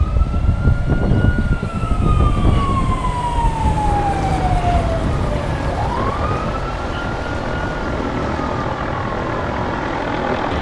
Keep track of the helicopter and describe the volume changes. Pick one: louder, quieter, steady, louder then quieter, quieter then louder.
louder.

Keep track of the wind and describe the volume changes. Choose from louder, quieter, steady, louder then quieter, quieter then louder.
quieter.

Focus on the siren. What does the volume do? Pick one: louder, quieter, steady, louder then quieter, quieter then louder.
louder then quieter.